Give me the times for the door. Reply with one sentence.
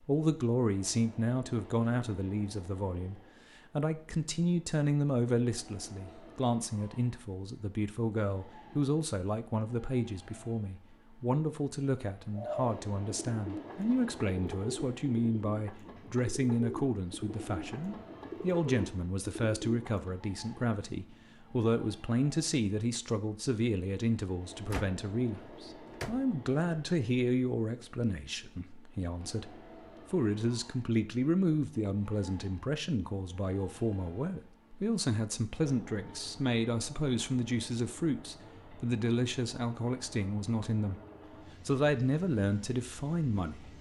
The door can be heard from 24.7 to 26.2 s.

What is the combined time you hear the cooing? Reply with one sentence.
The cooing can be heard for 8 seconds in total.